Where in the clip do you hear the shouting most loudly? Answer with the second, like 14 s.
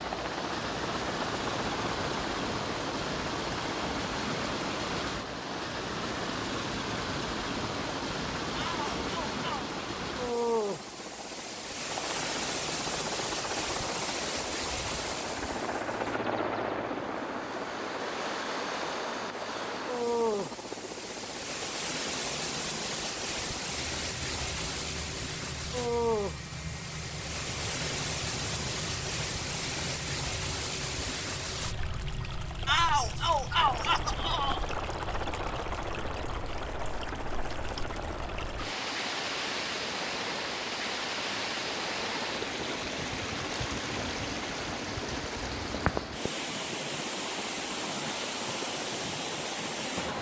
33 s.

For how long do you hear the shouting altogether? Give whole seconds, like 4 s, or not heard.
3 s.